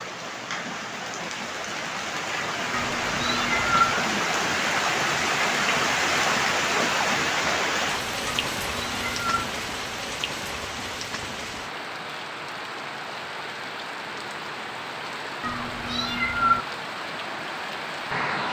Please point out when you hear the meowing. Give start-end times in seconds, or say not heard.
2.7-4.0, 8.2-9.4, 15.4-16.6.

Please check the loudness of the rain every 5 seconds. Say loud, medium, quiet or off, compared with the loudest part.
loud, loud, medium, medium.